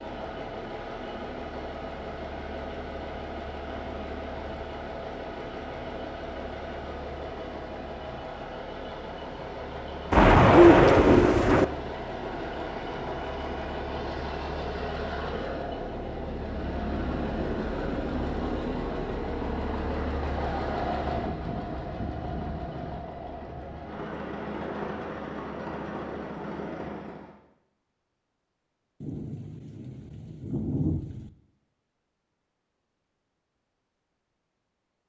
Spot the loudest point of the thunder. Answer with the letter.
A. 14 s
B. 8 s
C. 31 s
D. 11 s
D.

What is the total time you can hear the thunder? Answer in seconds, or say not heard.
4 s.